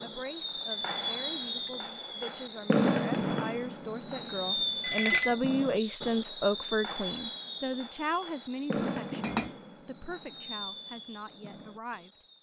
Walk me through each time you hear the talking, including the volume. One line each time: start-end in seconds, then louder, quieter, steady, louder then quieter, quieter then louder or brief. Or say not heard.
0.0-12.1 louder then quieter.